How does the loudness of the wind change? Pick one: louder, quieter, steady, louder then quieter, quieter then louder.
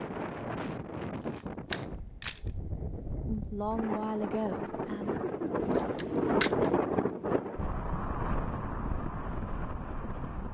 louder then quieter.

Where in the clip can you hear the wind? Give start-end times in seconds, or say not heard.
0.0-10.4.